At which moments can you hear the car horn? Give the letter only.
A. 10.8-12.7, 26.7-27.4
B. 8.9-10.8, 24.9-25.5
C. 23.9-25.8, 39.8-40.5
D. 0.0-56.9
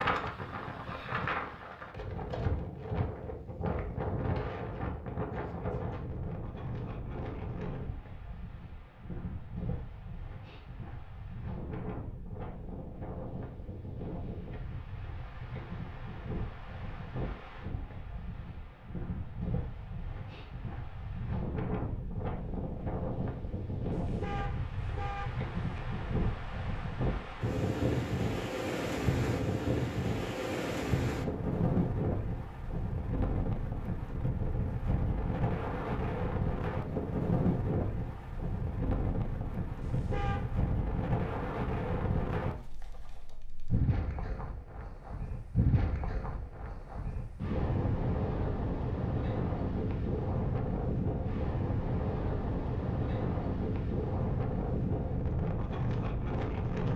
C.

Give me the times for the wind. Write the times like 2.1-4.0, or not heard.
0.0-56.9.